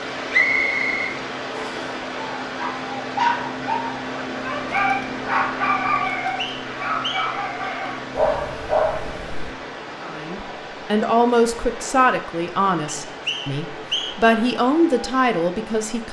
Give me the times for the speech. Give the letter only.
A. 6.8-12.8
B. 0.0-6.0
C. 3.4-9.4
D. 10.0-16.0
D.